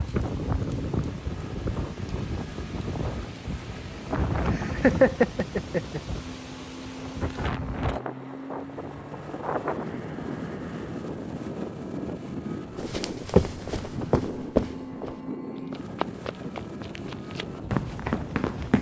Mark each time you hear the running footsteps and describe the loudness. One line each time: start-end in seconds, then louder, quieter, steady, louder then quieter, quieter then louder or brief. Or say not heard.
12.8-18.7 quieter then louder.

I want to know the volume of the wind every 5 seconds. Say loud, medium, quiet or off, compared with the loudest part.
loud, loud, loud, medium.